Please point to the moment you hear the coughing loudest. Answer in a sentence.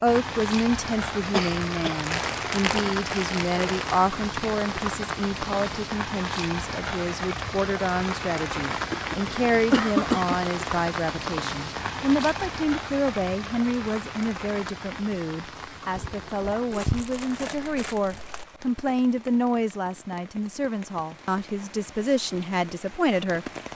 The loudest moment of the coughing is at 10 seconds.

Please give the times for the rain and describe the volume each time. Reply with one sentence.
You can hear the rain from 0.0 to 23.7 s, getting quieter.